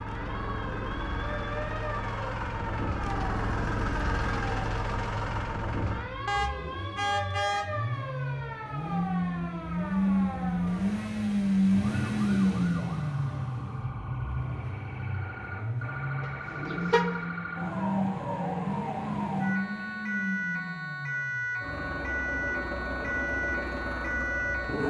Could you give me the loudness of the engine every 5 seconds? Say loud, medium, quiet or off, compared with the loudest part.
medium, medium, loud, medium, medium.